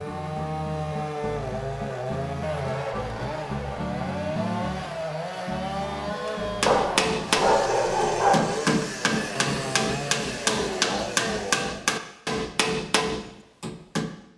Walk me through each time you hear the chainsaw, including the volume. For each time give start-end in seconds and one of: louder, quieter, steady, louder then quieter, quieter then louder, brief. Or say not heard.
0.0-11.9 steady.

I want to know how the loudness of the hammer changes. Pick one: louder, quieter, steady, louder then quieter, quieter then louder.
steady.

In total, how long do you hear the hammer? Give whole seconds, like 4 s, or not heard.
8 s.